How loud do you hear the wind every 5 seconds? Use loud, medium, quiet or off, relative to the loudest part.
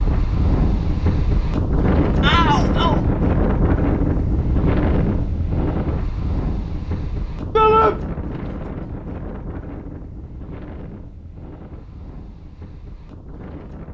loud, medium, quiet.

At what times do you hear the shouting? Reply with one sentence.
You can hear the shouting from 2.2 to 3.0 s and from 7.5 to 8.0 s.